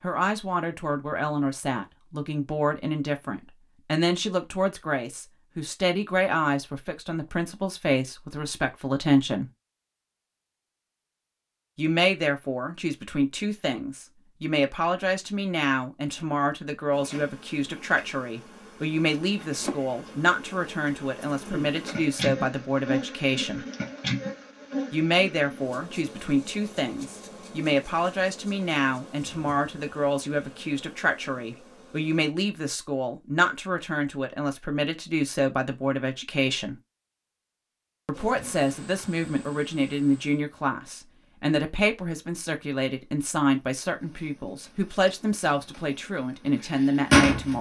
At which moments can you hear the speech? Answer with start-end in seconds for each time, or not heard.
0.0-9.5, 11.8-23.6, 24.9-36.8, 38.0-47.5.